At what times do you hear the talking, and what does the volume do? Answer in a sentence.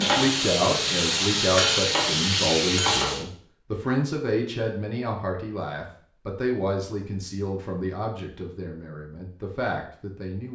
The talking can be heard from 0.0 to 10.5 s, getting quieter.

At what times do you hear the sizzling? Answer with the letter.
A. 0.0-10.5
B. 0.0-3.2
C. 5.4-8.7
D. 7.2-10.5
B.